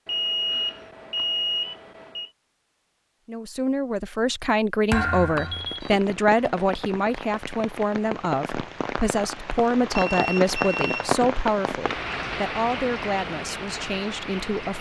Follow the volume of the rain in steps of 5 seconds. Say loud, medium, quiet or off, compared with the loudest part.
off, medium, loud.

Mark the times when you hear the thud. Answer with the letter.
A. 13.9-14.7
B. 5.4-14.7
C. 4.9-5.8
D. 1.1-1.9
C.